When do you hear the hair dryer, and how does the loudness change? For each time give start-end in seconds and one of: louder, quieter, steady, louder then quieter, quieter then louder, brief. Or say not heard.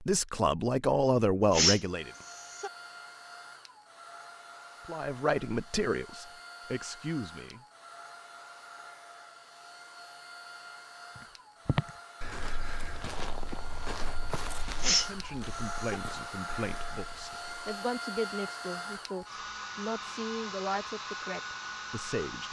1.8-22.4 louder.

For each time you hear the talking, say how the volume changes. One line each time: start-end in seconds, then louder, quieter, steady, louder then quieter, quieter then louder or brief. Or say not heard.
0.0-2.1 brief
4.8-7.7 brief
14.9-22.4 steady.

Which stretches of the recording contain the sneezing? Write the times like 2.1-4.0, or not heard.
1.5-2.7, 14.8-16.0.